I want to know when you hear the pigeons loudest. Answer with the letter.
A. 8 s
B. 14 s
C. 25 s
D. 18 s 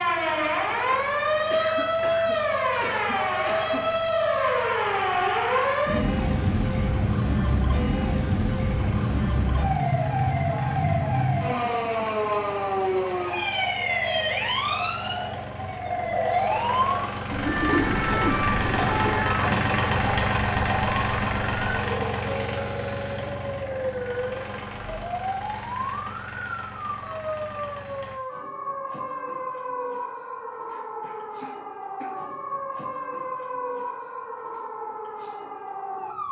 D.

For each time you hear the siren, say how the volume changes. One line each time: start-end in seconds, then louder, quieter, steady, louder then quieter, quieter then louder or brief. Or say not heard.
0.0-36.2 quieter.